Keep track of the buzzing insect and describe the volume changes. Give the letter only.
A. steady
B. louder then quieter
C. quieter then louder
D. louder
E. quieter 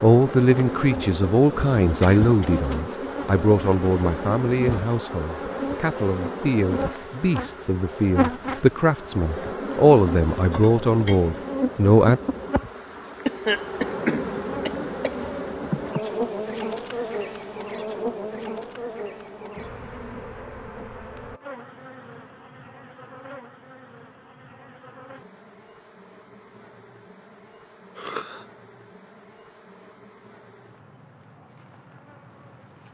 E.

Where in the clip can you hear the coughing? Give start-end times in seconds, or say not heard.
2.0-2.5, 13.2-15.5, 27.9-28.4.